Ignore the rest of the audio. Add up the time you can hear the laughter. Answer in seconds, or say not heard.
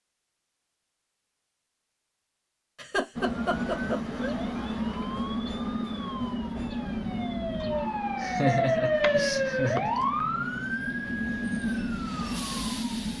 3 s.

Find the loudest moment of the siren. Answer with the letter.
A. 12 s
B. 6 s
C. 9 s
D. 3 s
C.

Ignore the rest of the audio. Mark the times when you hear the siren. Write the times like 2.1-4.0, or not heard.
3.5-13.1.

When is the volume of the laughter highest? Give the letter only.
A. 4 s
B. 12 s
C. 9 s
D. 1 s
C.